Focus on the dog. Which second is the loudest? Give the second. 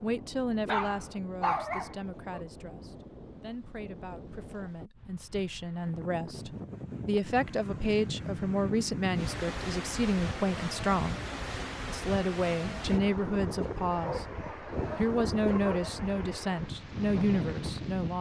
2 s.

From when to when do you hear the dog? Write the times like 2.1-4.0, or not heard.
0.7-2.5, 13.9-15.9.